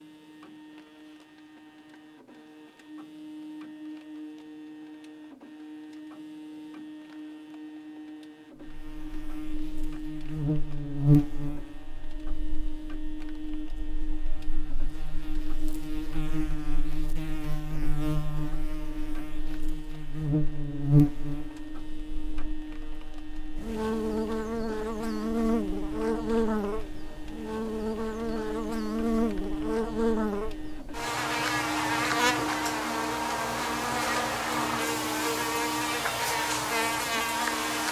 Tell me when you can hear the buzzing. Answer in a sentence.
The buzzing can be heard from 8.6 to 37.8 s.